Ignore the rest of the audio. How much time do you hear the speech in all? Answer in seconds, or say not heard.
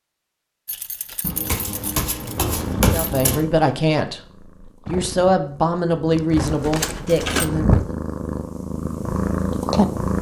5 s.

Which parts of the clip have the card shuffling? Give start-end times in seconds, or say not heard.
1.2-3.5.